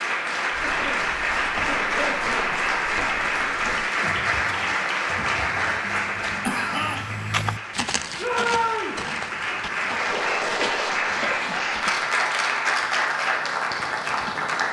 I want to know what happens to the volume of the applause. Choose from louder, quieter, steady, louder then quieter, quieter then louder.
quieter then louder.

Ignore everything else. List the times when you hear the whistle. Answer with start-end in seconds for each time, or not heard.
not heard.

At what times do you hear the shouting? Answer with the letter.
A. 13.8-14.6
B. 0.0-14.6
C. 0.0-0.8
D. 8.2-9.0
D.